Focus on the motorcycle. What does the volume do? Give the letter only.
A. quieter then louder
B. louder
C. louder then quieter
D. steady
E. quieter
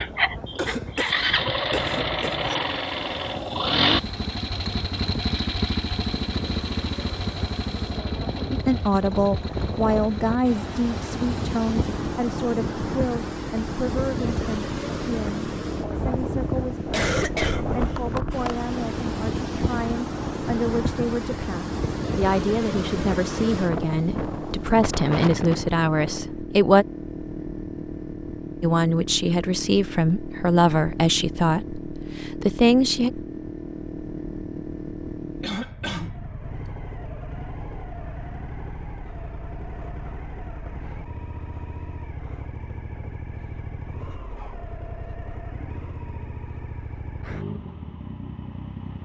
E.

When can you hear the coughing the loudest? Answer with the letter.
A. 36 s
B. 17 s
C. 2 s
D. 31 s
B.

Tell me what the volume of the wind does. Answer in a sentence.
The volume of the wind goes up.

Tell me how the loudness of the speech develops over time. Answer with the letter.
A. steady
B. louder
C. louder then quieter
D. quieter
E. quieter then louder
E.